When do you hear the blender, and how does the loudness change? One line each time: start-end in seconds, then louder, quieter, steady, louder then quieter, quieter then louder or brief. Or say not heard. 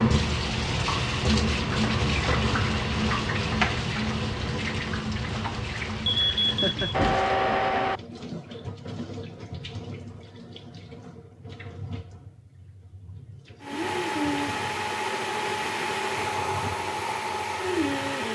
13.6-18.3 steady.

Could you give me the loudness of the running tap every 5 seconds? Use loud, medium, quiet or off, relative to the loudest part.
loud, medium, quiet, quiet.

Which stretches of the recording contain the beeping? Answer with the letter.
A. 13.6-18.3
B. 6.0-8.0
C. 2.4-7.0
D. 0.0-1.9
B.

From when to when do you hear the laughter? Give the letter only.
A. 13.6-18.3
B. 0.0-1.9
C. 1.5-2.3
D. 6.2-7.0
D.